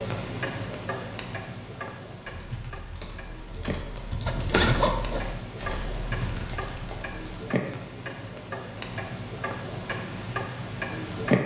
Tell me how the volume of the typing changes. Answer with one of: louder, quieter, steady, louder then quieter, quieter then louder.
louder then quieter.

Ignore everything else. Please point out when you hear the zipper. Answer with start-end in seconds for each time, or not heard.
4.1-5.2.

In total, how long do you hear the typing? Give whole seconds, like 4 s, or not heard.
5 s.